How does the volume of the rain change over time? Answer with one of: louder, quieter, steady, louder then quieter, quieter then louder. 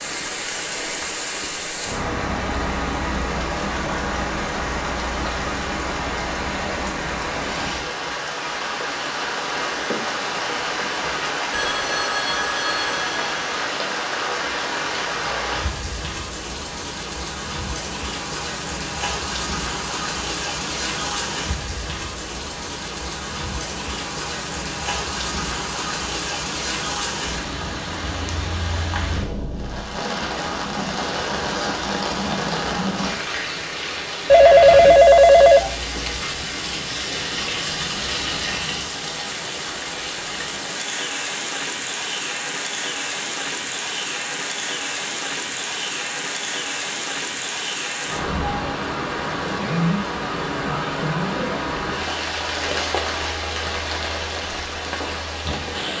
steady.